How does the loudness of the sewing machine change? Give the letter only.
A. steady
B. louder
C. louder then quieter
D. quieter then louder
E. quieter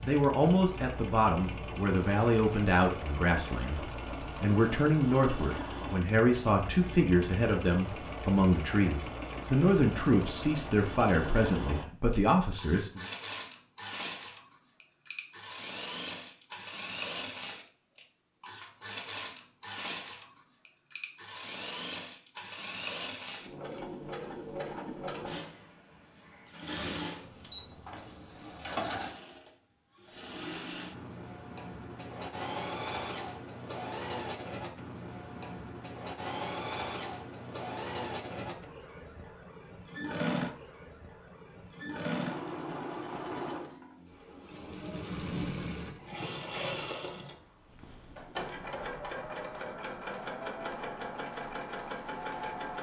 A.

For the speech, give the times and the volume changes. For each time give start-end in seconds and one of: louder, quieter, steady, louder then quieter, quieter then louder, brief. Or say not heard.
0.0-13.1 steady.